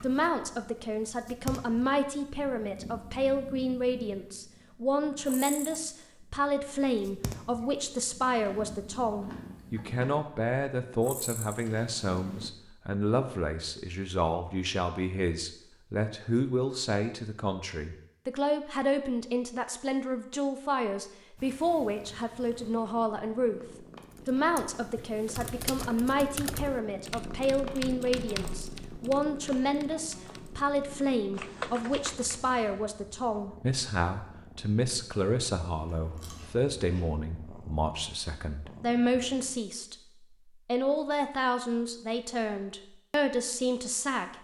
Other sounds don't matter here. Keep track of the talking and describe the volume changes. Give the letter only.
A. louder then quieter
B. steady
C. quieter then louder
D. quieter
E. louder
B.